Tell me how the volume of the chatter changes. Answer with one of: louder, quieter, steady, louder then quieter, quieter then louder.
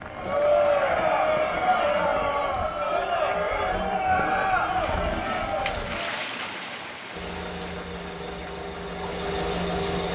quieter.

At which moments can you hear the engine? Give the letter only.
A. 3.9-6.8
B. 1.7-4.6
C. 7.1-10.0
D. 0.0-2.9
C.